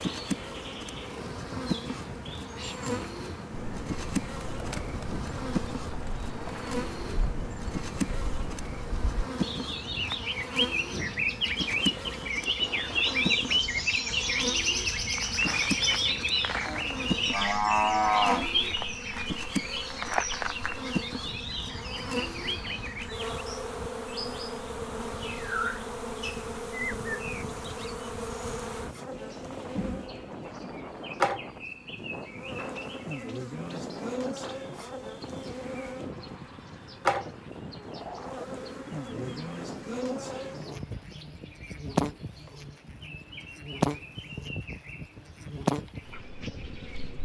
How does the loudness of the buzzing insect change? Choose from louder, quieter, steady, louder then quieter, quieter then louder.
steady.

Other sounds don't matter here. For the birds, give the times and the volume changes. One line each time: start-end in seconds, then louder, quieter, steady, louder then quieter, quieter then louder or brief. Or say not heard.
0.0-47.2 louder then quieter.